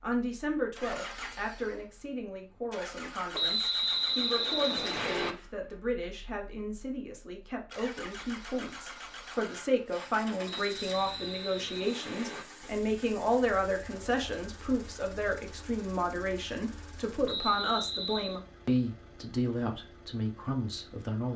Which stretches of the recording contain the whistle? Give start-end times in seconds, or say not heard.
3.3-5.3, 10.4-12.4, 17.2-18.4.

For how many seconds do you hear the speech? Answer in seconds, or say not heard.
21 s.